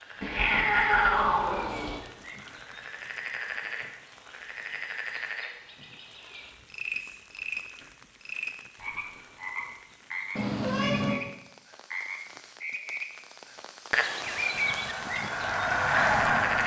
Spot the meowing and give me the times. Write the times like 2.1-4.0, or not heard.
0.2-2.0, 10.3-11.2.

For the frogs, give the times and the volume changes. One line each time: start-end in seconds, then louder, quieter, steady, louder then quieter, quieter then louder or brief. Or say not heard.
0.0-16.6 louder.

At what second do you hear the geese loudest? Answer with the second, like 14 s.
16 s.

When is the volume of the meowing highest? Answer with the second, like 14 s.
1 s.